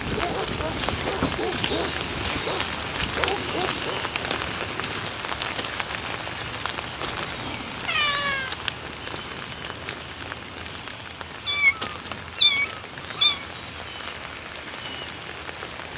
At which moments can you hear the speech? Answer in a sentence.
You can't hear the speech here.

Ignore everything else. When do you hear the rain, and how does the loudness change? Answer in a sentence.
The rain can be heard from 0.0 to 15.9 s, getting quieter.